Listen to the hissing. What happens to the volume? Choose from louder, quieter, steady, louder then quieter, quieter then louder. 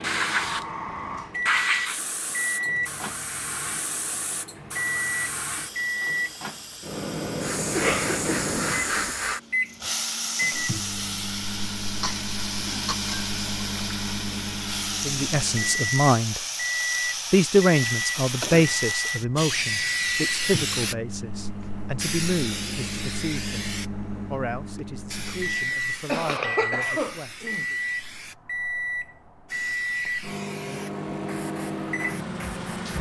quieter.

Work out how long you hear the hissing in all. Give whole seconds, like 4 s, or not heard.
33 s.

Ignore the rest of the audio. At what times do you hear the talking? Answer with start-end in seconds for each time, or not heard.
15.1-16.4, 17.3-23.7, 24.3-27.8.